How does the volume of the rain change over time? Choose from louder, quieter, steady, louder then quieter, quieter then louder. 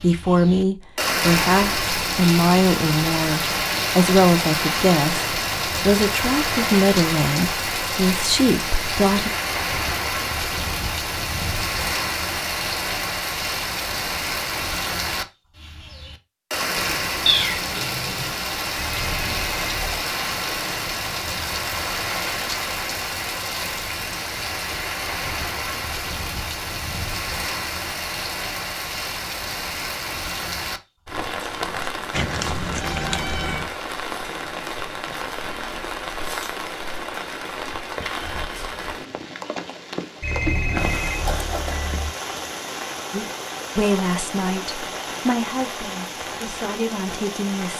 quieter.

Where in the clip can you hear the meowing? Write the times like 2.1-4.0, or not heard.
17.2-18.4, 32.1-33.6.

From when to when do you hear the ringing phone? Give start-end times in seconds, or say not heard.
18.8-20.1, 40.2-42.1.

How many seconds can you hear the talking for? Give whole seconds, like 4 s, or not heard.
14 s.